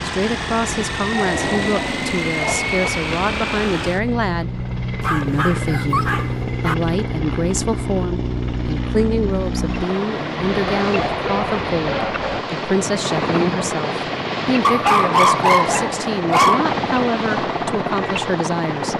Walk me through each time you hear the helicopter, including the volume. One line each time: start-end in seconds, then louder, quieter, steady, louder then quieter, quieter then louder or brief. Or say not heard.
0.0-18.9 steady.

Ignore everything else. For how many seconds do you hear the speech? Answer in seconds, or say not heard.
19 s.